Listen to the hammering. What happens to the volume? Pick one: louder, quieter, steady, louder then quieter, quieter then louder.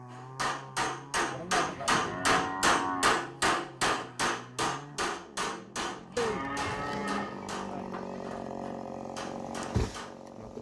quieter.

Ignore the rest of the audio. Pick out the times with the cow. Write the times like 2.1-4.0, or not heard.
1.2-3.1, 6.2-7.9.